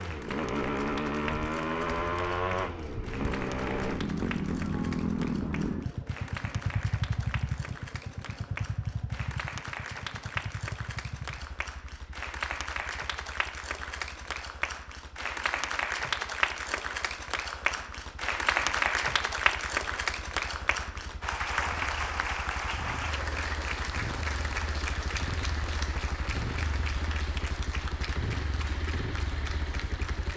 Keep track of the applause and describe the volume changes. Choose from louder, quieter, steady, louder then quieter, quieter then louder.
louder then quieter.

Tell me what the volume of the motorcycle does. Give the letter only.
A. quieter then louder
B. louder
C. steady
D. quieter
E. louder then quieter
A.